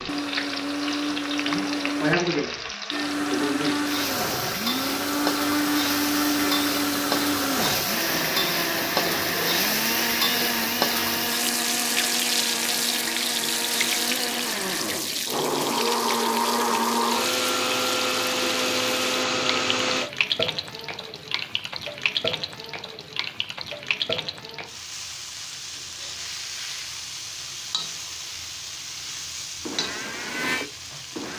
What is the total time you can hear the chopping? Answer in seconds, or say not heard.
not heard.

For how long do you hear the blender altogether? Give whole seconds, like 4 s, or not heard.
22 s.